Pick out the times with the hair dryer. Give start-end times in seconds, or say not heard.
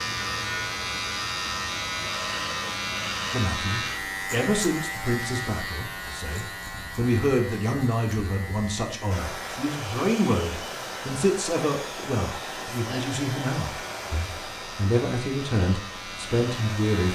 9.1-17.1.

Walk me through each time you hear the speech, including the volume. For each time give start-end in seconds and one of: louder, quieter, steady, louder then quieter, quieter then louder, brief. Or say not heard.
3.3-17.1 steady.